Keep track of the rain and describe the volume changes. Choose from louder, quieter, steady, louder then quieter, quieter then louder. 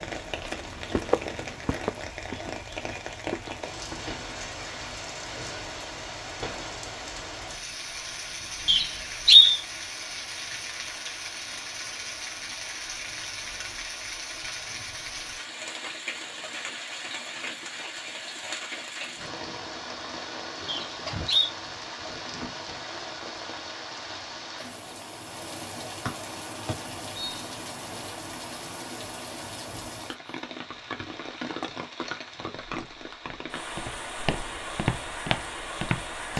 steady.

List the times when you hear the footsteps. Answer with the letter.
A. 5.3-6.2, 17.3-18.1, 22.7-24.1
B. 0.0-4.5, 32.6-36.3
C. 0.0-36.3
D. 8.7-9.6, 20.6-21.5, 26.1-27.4
B.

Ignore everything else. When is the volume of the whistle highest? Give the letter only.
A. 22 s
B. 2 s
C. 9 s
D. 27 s
C.